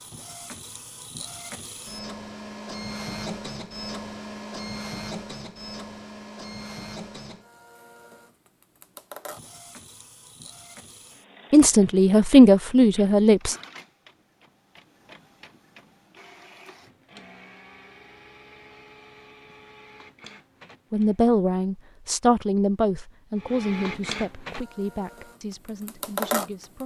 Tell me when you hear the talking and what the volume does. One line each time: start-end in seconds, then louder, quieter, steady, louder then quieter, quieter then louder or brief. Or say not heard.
11.5-13.6 brief
20.9-26.8 quieter.